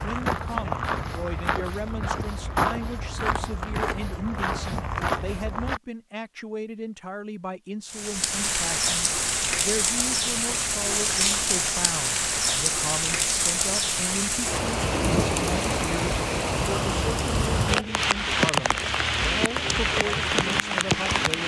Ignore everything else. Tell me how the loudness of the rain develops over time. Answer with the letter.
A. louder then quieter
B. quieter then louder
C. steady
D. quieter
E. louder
C.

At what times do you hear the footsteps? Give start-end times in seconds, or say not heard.
0.0-5.8.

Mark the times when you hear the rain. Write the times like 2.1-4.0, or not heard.
7.8-21.4.